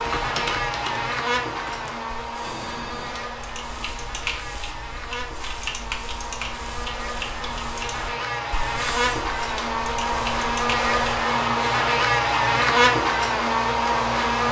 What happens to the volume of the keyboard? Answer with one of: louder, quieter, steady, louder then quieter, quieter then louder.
steady.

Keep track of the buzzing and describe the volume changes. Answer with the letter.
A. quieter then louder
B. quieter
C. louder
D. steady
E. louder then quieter
A.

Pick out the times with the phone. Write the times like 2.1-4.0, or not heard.
2.4-3.3.